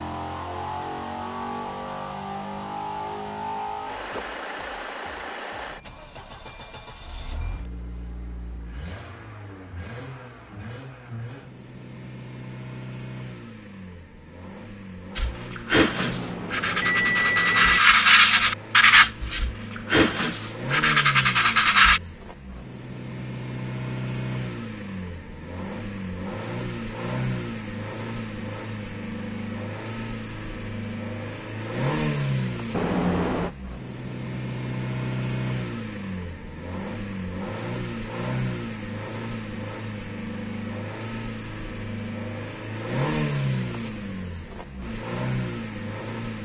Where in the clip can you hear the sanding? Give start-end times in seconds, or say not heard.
15.2-22.0.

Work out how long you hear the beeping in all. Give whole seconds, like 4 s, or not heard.
3 s.